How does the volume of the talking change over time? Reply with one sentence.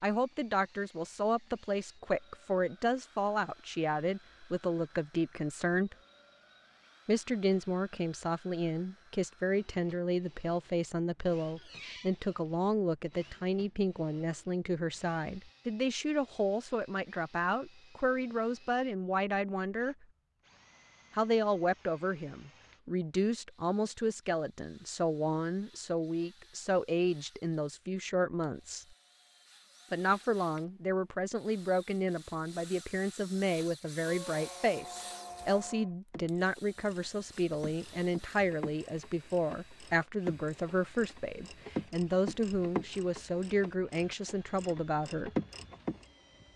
The volume of the talking stays about the same.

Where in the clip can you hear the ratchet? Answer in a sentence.
You can hear the ratchet from 35.3 to 46.1 s.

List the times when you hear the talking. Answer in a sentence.
You can hear the talking from 0.0 to 6.0 s, from 7.0 to 20.1 s, from 21.1 to 28.9 s and from 29.9 to 45.3 s.